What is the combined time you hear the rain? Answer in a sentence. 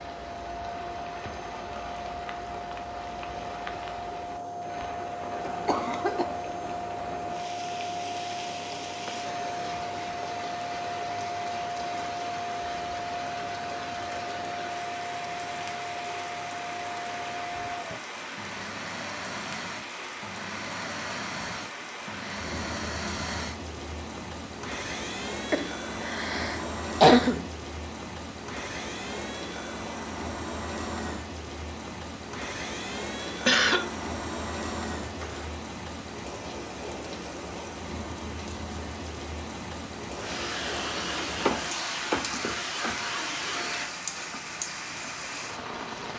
The rain can be heard for 46 seconds in total.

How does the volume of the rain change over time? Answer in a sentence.
The volume of the rain stays about the same.